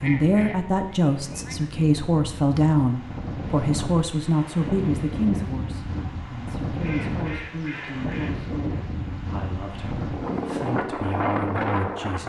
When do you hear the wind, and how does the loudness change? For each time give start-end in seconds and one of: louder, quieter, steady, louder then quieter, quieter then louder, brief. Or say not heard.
0.0-12.2 louder.